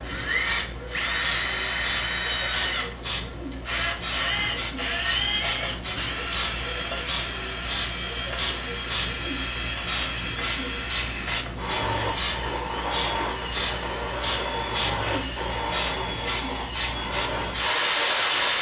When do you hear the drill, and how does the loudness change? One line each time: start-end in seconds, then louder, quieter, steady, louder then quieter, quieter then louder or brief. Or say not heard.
0.0-18.5 steady.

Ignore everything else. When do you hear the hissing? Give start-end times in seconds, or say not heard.
0.0-18.5.